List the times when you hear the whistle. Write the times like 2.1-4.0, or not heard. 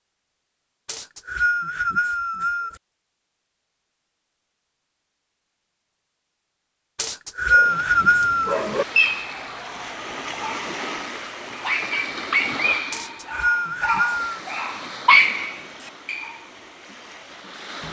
0.8-2.8, 7.0-8.6, 12.9-14.2.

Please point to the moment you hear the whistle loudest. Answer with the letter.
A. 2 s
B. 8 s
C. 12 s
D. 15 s
B.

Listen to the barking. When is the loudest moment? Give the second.
15 s.